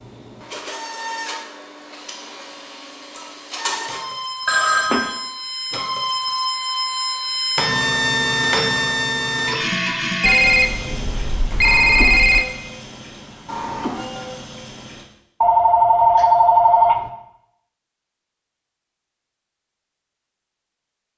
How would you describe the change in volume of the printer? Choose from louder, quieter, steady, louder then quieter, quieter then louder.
louder then quieter.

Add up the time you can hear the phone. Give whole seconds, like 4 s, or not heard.
5 s.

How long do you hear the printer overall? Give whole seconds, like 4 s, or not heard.
15 s.